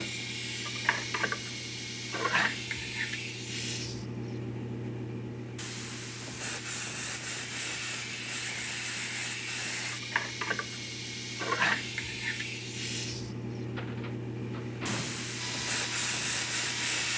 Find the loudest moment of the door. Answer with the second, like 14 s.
15 s.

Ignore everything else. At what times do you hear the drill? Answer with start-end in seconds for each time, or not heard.
15.3-17.1.